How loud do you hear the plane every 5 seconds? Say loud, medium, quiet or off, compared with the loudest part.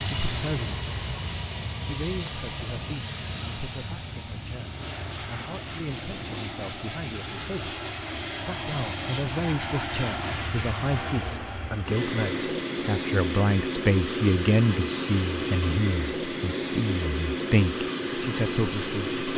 medium, medium, loud, loud.